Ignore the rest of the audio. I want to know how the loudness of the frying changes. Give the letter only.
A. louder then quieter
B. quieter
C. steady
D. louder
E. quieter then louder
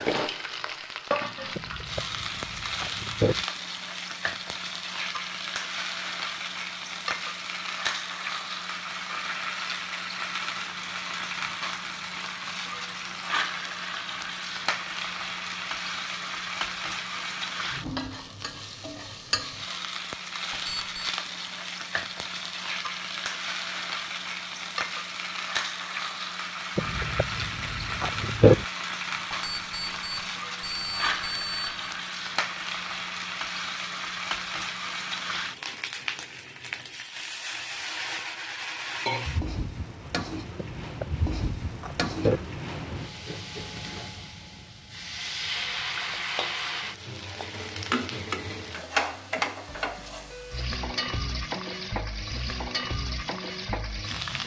C.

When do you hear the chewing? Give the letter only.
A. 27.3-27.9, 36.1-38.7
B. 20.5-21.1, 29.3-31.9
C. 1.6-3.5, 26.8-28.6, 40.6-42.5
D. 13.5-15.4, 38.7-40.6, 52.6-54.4
C.